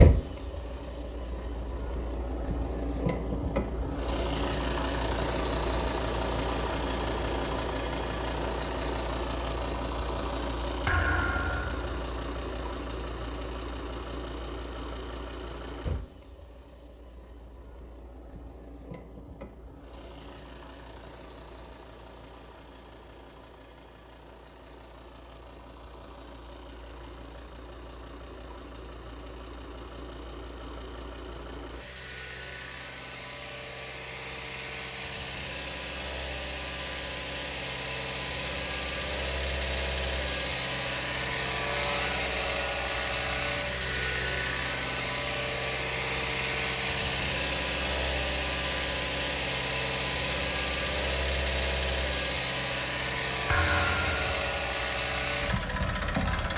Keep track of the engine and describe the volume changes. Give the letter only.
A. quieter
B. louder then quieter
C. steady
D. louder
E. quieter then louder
E.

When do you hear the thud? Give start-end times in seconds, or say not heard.
10.8-12.1, 53.5-54.5.